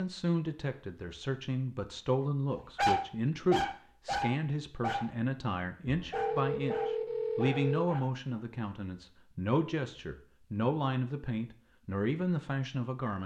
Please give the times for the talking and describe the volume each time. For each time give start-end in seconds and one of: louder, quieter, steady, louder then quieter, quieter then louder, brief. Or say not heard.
0.0-13.2 steady.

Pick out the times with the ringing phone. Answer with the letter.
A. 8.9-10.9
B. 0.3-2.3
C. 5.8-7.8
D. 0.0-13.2
C.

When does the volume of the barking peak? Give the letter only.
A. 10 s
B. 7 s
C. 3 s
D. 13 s
C.